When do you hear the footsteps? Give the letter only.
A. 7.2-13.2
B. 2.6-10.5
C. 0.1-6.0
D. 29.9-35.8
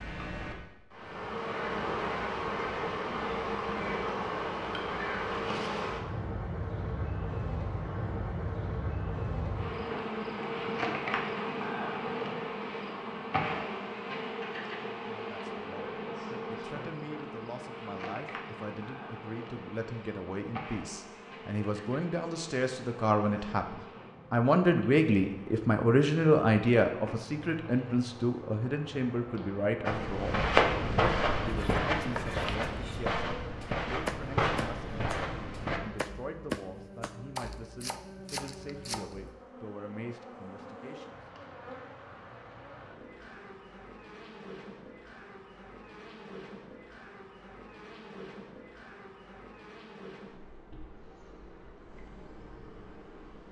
D.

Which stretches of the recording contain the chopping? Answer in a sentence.
You can hear the chopping from 31.4 to 39.4 s.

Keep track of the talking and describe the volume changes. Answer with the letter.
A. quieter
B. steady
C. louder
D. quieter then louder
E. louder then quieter
E.